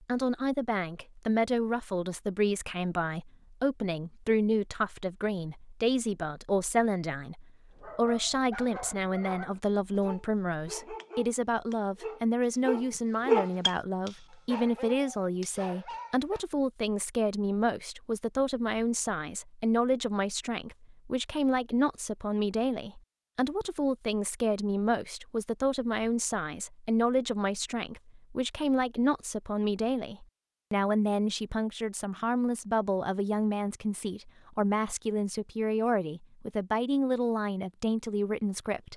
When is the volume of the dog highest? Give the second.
13 s.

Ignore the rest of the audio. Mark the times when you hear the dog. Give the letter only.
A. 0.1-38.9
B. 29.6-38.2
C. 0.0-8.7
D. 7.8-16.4
D.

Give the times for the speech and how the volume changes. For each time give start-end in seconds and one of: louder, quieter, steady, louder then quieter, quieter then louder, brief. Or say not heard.
0.1-38.9 steady.